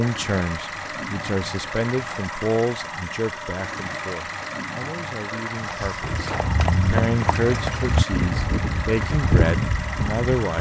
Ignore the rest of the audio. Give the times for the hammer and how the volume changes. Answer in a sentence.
You can't hear the hammer here.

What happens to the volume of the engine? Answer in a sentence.
The loudness of the engine stays about the same.